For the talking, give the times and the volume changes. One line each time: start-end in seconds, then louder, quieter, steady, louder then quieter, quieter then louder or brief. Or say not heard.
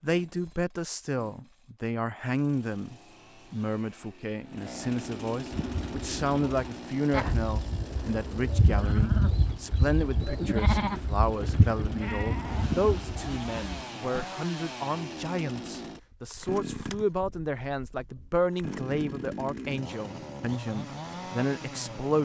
0.0-22.2 steady.